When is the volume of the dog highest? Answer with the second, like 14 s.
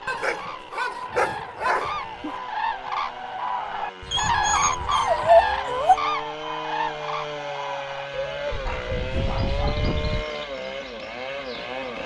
5 s.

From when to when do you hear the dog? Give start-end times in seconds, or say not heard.
0.1-2.0, 4.1-6.0, 8.7-9.8.